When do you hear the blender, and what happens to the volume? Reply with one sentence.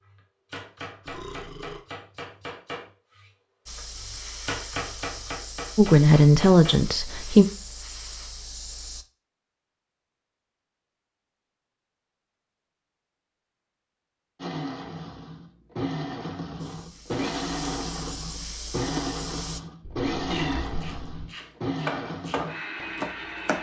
You can hear the blender from 14.3 to 23.5 s, at a steady volume.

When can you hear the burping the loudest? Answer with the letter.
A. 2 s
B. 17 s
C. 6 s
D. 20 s
D.